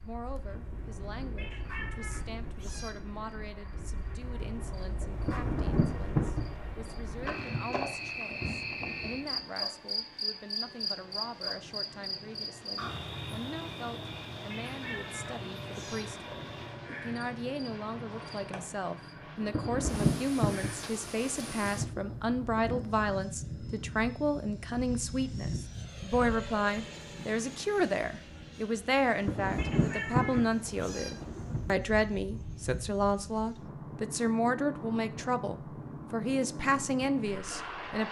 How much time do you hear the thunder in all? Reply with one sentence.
The thunder can be heard for 11 seconds in total.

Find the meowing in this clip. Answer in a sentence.
The meowing can be heard from 1.4 to 2.9 s, from 14.5 to 16.1 s and from 29.6 to 31.1 s.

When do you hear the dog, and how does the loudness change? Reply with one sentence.
The dog can't be heard in this clip.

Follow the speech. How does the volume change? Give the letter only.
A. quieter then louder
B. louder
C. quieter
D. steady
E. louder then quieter
B.